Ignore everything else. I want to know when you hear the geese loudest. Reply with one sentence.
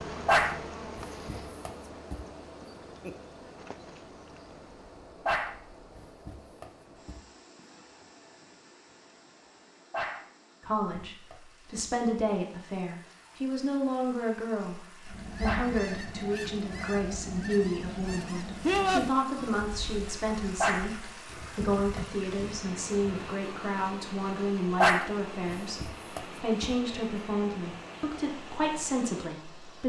The loudest moment of the geese is at 19 seconds.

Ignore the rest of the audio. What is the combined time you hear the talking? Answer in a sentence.
You can hear the talking for 19 seconds altogether.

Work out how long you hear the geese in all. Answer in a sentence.
You can hear the geese for 8 seconds altogether.